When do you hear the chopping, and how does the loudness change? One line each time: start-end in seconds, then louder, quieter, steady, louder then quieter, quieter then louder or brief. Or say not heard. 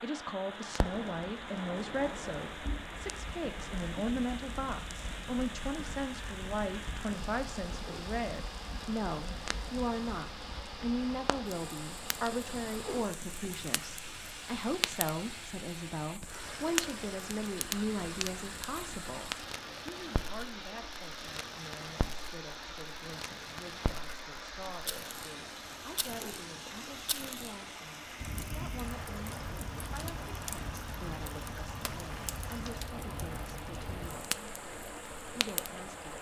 not heard.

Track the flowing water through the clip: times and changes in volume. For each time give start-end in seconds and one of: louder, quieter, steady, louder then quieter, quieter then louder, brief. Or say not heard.
0.0-36.1 steady.